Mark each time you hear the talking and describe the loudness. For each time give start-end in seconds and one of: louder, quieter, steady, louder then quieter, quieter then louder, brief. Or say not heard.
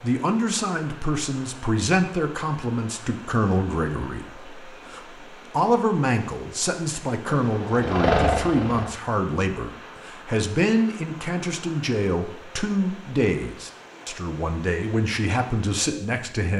0.0-16.5 steady.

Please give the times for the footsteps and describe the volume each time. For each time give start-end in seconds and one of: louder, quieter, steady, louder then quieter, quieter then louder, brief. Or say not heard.
not heard.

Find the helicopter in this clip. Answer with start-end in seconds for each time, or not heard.
7.2-8.9.